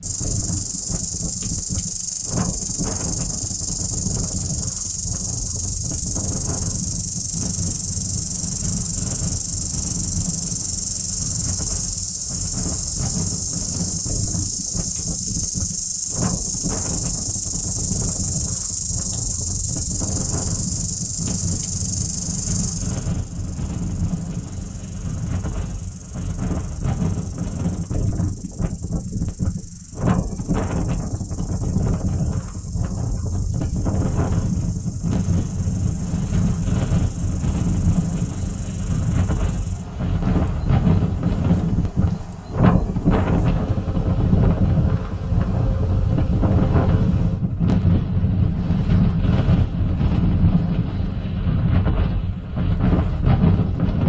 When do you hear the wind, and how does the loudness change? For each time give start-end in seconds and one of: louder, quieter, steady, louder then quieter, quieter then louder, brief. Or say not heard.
0.0-54.0 louder.